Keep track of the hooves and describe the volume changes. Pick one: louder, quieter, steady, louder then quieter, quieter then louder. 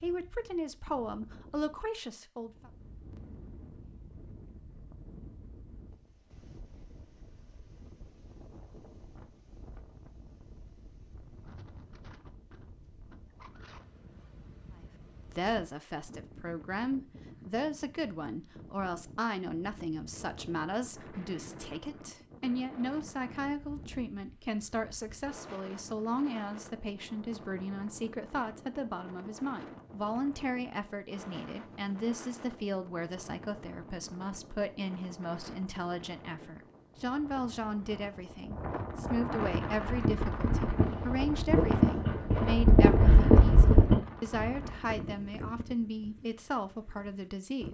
louder.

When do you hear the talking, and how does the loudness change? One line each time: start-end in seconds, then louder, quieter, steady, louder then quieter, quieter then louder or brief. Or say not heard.
0.0-2.7 brief
15.2-47.6 steady.